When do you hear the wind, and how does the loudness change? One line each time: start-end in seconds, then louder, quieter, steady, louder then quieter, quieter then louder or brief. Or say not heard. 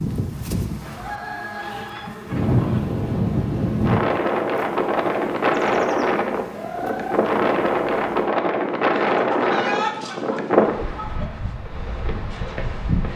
2.2-13.1 quieter.